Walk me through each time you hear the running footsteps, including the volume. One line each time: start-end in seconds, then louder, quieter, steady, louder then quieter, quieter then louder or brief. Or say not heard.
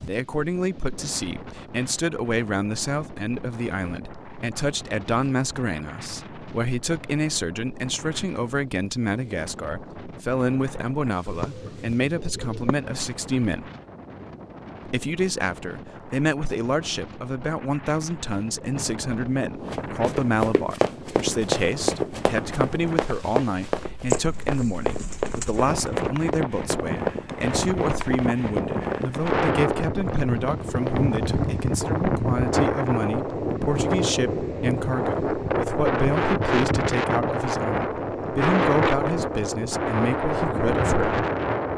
19.6-31.4 quieter.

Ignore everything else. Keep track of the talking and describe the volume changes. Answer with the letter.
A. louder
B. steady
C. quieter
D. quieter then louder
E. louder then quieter
B.